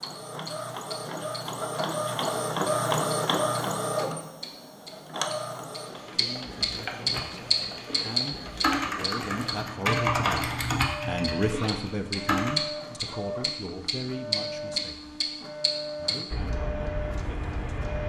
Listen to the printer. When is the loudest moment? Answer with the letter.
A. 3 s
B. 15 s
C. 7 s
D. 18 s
A.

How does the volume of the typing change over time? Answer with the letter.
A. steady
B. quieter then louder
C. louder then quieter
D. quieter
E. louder
C.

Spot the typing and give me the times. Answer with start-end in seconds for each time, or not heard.
7.0-12.6.